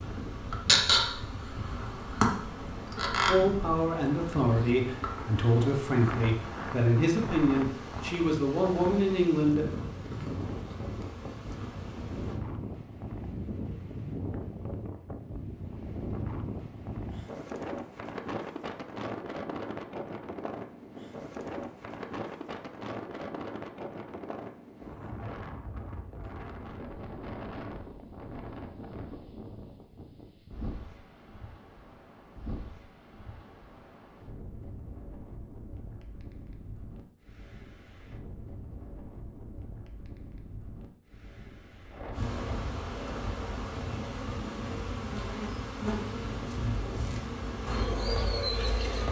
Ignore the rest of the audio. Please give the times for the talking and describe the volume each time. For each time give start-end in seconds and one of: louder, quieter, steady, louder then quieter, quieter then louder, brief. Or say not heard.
3.2-9.7 steady.